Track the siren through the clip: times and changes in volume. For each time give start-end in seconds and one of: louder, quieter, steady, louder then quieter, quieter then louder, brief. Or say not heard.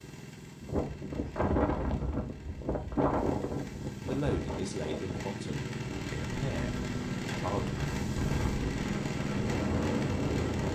not heard.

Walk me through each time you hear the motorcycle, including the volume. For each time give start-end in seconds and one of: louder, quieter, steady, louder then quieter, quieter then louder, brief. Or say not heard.
0.0-10.6 louder.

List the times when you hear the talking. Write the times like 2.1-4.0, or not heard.
4.0-7.7.